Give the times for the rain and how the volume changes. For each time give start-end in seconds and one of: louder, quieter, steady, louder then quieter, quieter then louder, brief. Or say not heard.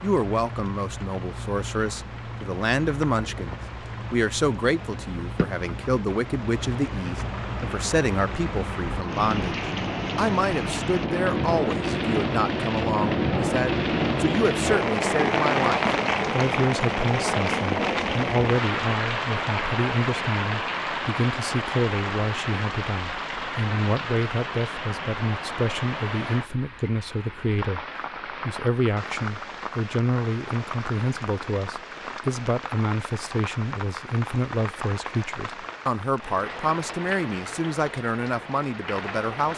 0.0-39.5 louder then quieter.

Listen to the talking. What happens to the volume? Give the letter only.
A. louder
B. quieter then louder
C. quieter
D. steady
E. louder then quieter
D.